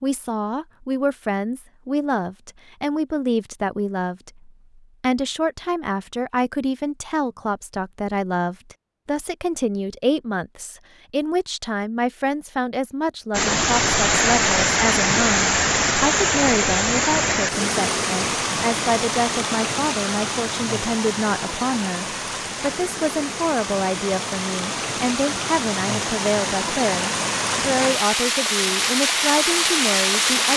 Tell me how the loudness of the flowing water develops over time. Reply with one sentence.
The volume of the flowing water goes down, then up.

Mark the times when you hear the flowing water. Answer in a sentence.
You can hear the flowing water from 13.3 to 30.5 s.